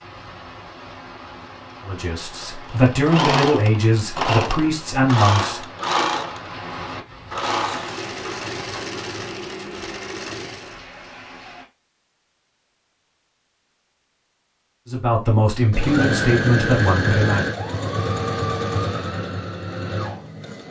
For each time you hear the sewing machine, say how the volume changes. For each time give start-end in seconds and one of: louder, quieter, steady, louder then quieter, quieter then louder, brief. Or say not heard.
2.6-10.8 quieter
15.7-20.6 quieter.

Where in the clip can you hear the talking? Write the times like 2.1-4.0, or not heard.
1.8-5.6, 14.8-17.4.